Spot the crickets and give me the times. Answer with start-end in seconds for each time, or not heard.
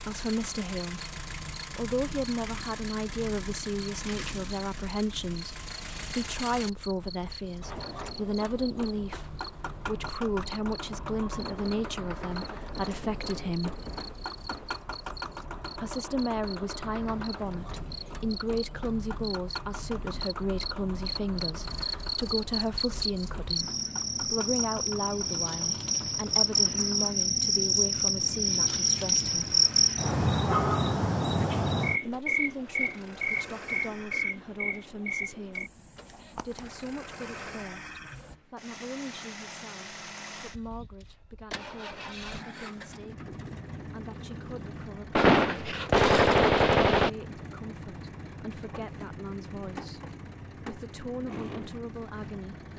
0.0-38.4.